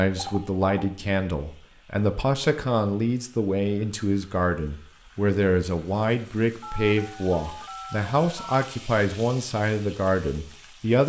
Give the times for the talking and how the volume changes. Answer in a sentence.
The talking can be heard from 0.0 to 11.0 s, at a steady volume.